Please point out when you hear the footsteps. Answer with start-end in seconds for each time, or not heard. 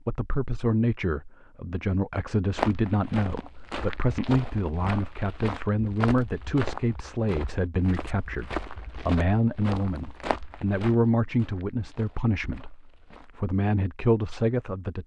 2.5-13.5.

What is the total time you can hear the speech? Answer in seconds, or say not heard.
15 s.